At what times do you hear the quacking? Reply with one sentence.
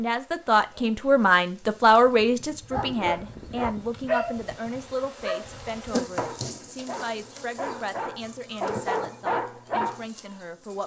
You can't hear the quacking here.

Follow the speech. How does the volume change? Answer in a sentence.
The loudness of the speech goes down.